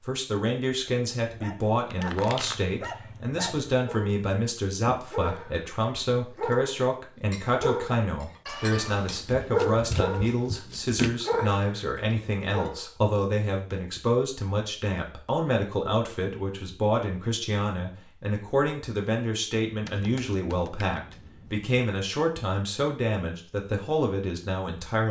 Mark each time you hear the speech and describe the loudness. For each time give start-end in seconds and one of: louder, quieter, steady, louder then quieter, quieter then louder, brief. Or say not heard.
0.0-25.0 steady.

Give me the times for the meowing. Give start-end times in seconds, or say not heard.
8.4-9.2.